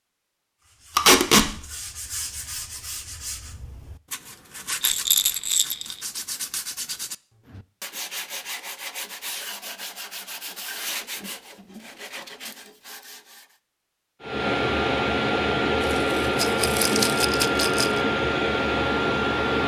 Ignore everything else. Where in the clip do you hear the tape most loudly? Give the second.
1 s.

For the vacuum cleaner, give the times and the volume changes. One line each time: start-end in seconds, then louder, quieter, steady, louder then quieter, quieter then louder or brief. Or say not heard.
14.2-19.6 steady.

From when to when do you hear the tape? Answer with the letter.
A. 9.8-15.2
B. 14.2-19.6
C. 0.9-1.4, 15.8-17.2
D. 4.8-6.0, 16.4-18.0
C.